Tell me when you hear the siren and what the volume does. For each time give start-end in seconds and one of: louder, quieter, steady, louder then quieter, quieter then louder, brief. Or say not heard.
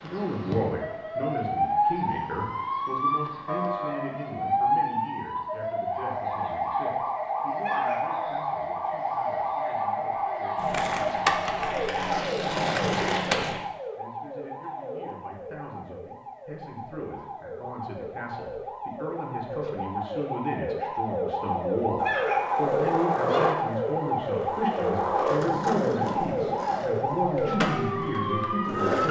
0.0-29.0 quieter then louder.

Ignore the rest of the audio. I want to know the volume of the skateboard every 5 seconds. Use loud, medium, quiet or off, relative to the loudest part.
off, off, loud, off, loud, loud.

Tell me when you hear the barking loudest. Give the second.
22 s.